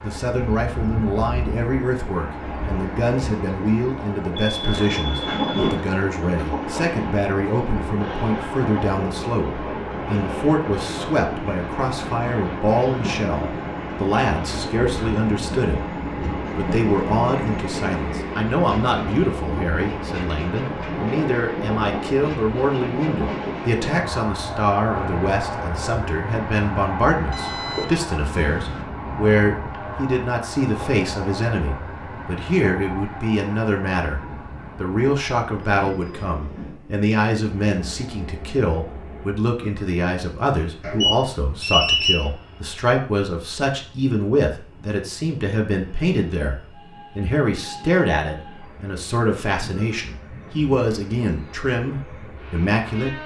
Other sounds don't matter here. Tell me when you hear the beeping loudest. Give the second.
42 s.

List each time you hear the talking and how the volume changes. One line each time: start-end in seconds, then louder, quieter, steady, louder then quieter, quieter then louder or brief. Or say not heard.
0.0-53.2 steady.